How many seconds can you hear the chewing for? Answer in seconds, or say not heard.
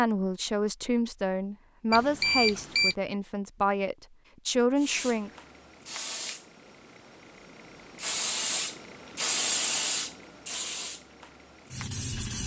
not heard.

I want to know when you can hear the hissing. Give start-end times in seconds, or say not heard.
4.8-12.4.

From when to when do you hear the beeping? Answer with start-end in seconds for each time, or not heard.
1.9-3.0.